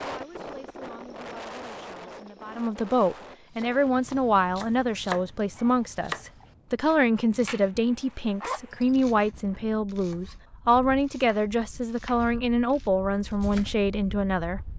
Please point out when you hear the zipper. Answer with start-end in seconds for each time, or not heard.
8.4-8.9.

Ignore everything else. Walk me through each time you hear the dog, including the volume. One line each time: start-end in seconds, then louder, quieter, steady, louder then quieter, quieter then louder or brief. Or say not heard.
not heard.